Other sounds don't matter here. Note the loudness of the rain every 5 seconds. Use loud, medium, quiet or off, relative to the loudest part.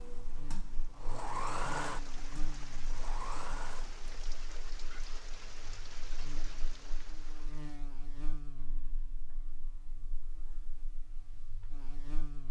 loud, loud, off.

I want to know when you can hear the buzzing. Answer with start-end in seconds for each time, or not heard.
0.1-12.4.